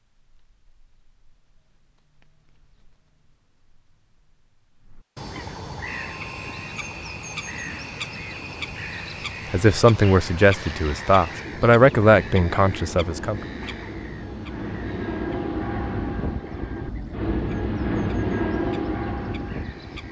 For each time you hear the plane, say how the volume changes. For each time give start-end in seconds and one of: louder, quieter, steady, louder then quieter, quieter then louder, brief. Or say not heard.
5.8-20.0 louder.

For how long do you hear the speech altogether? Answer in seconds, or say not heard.
4 s.